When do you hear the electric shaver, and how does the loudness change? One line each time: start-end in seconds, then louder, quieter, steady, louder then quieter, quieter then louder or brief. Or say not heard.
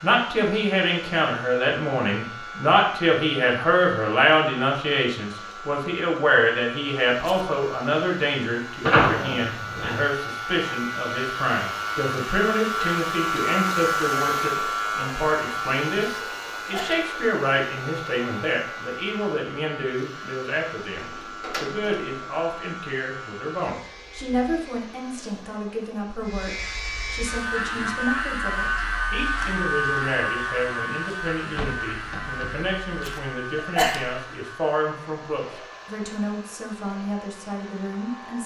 0.0-24.9 louder then quieter
26.2-38.4 quieter.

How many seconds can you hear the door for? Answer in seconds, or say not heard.
4 s.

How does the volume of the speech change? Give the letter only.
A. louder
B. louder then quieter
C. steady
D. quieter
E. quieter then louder
D.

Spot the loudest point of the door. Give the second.
9 s.